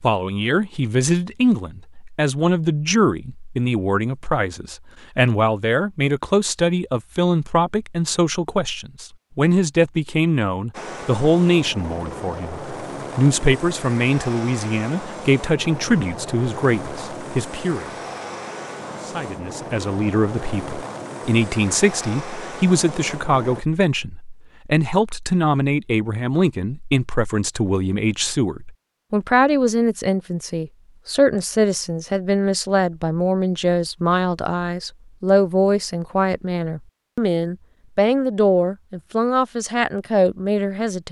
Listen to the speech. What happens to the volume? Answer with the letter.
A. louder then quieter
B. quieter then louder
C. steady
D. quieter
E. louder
C.